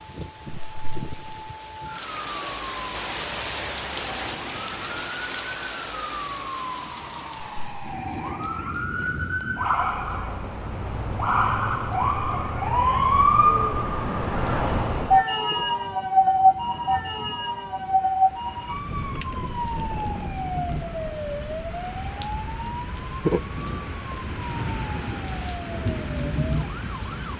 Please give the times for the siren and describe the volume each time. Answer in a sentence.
The siren can be heard from 0.0 to 27.3 s, getting louder then quieter.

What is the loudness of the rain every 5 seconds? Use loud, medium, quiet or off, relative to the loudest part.
loud, medium, quiet, quiet, loud, loud.